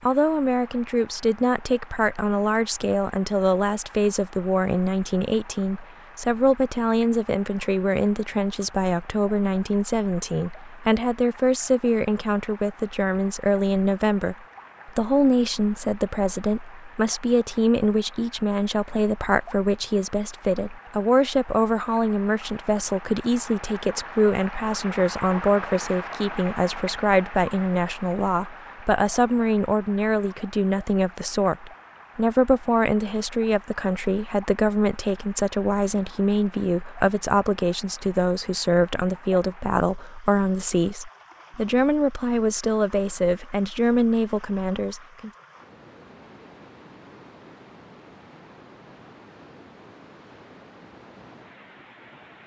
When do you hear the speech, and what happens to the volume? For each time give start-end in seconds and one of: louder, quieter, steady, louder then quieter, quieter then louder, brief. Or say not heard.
0.0-45.3 steady.